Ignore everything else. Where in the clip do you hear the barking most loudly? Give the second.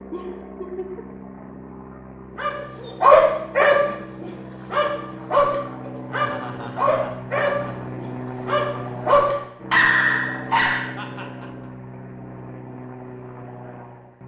3 s.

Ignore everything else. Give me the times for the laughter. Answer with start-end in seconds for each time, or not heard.
0.1-1.1, 6.1-7.9, 10.9-11.5.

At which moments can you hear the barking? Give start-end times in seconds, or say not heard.
2.4-10.8.